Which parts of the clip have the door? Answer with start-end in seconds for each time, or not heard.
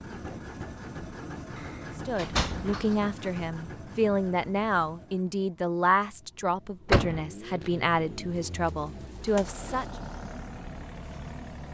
1.6-2.9, 6.8-7.2.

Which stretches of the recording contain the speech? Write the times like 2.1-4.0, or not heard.
1.9-9.8.